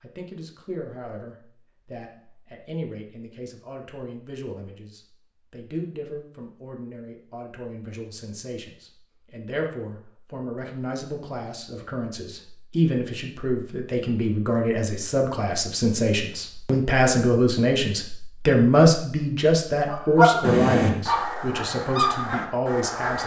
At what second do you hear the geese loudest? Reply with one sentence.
The loudest moment of the geese is at 20 seconds.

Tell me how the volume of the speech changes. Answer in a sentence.
The loudness of the speech goes up.